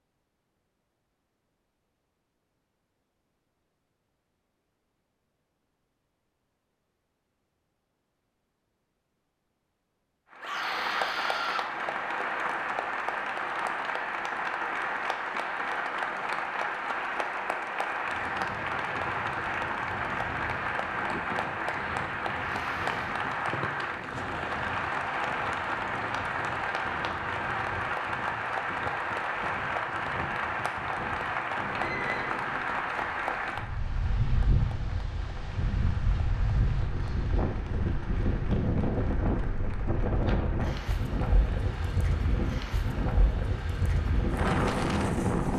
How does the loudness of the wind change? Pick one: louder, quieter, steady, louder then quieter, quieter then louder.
louder.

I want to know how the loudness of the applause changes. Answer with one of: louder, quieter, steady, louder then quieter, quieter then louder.
quieter.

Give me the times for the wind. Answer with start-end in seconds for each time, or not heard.
17.9-45.5.